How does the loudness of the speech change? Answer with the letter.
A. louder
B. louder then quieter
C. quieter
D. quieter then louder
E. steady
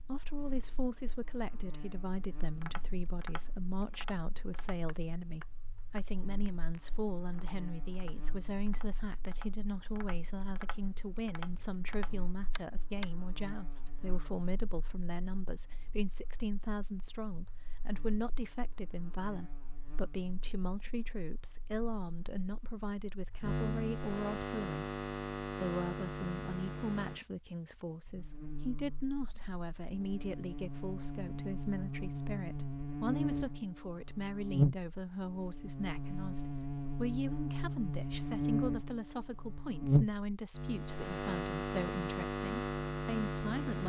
E.